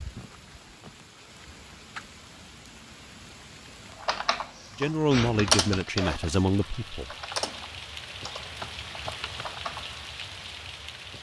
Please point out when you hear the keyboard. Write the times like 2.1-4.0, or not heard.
4.0-10.0.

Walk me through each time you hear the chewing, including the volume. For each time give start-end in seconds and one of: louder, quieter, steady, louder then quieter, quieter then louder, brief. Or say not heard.
not heard.